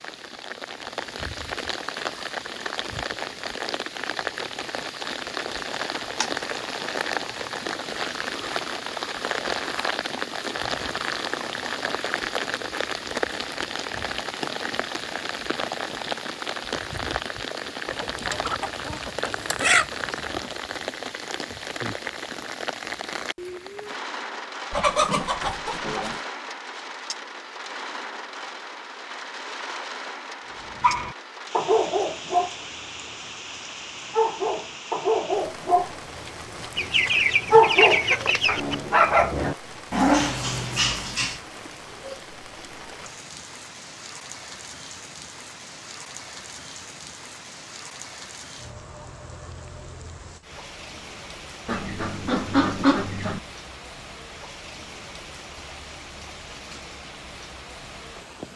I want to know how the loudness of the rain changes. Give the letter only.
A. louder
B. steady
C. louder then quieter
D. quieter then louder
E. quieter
E.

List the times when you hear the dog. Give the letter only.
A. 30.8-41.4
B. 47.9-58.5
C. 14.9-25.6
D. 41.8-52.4
A.